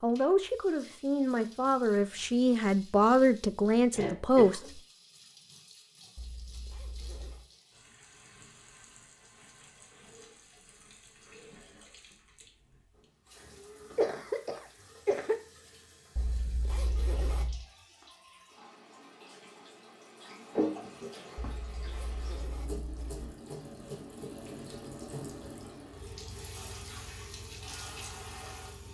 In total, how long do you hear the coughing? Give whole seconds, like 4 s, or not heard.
3 s.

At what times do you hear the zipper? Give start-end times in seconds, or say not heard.
6.2-7.5, 16.1-17.6, 21.4-23.3.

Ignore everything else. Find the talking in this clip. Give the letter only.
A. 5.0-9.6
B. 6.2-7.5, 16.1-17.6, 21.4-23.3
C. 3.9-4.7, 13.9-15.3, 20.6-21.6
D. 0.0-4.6
D.